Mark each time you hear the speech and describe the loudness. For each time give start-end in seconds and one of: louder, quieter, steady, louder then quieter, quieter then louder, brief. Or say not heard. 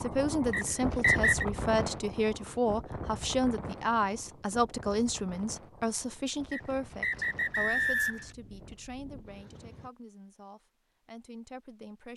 0.0-12.1 quieter.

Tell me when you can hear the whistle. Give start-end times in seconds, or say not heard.
0.5-1.4, 6.5-8.2.